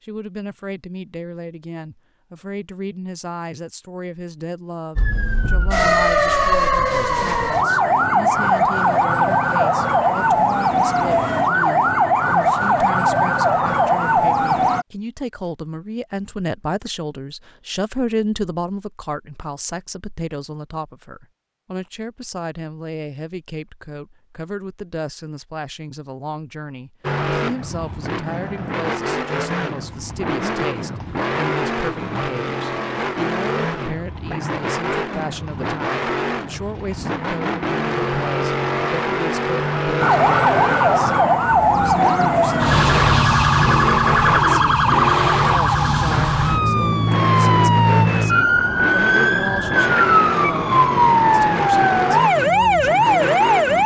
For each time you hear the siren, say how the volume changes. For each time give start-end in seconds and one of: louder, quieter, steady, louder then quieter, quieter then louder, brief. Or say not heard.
5.0-14.8 steady
40.0-53.8 steady.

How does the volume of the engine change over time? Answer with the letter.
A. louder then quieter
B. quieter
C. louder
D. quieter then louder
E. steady
E.